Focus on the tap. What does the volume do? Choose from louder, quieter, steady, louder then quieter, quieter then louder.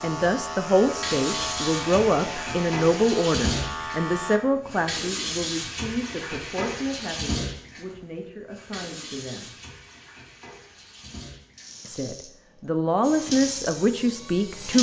quieter then louder.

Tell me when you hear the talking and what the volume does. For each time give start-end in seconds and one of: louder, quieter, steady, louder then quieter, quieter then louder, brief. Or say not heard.
0.0-9.6 quieter
11.8-14.7 brief.